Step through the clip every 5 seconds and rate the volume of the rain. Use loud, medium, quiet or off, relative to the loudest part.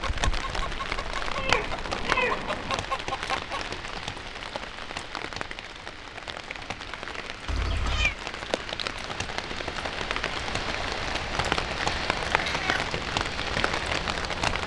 loud, medium, loud.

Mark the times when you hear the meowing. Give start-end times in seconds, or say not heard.
1.4-2.8, 7.5-8.2, 12.3-12.8.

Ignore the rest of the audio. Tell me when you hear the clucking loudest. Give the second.
3 s.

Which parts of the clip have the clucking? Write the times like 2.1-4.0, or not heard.
0.0-3.6.